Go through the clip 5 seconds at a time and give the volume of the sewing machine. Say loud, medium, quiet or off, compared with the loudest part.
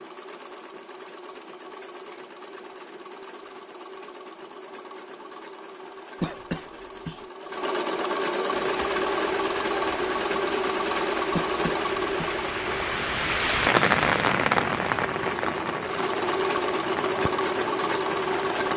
quiet, loud, loud, loud.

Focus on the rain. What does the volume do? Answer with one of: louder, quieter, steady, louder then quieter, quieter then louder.
louder then quieter.